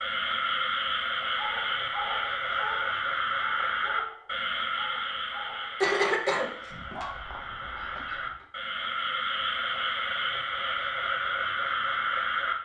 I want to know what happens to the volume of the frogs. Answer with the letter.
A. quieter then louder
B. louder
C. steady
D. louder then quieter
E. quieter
A.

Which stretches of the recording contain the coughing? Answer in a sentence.
The coughing can be heard from 5.8 to 7.0 s.